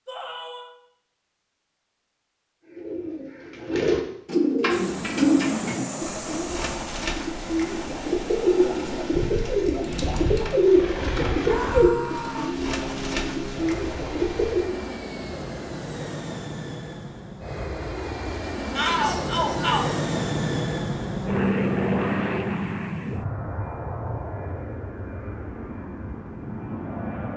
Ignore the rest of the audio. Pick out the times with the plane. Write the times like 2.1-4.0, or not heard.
4.7-27.3.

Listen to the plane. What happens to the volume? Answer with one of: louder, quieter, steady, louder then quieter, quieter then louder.
louder then quieter.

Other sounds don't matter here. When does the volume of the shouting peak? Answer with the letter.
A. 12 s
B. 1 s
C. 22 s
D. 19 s
D.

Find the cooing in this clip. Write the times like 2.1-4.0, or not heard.
2.6-14.7.